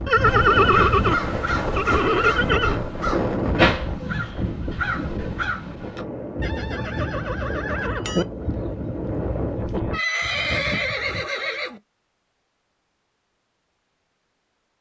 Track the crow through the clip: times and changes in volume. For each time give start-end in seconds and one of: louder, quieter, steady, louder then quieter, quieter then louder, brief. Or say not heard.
0.2-11.2 quieter.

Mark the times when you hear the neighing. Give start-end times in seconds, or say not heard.
0.1-2.8, 6.4-8.2, 9.9-11.8.